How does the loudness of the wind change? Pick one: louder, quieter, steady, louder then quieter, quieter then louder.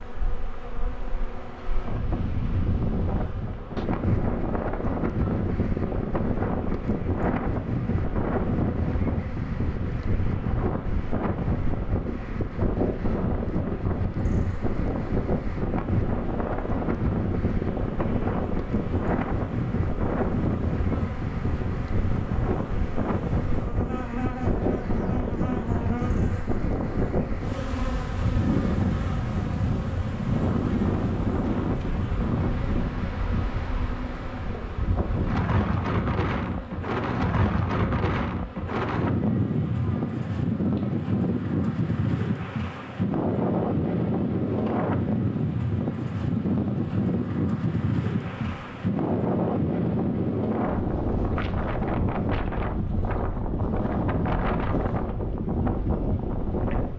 steady.